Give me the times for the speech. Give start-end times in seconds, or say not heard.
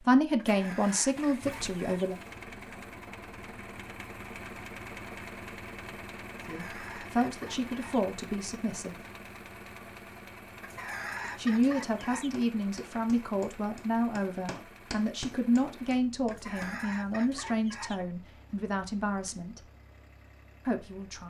0.0-2.1, 6.5-9.0, 11.3-19.6, 20.6-21.2.